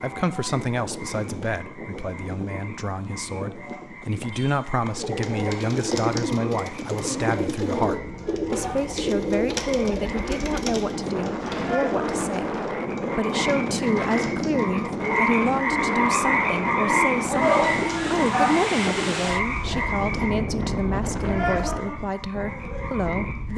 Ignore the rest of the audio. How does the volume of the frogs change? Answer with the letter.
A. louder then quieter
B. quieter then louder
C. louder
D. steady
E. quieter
A.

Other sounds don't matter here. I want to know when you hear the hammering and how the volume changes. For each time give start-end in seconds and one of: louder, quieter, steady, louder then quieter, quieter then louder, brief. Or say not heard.
not heard.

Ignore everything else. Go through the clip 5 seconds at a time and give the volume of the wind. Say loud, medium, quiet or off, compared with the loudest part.
medium, medium, loud, loud, loud.